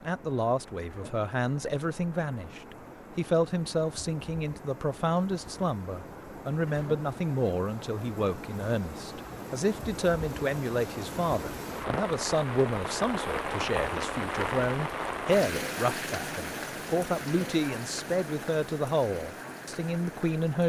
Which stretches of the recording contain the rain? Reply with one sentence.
You can hear the rain from 0.0 to 20.6 s.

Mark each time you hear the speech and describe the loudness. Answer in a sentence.
You can hear the speech from 0.0 to 20.6 s, at a steady volume.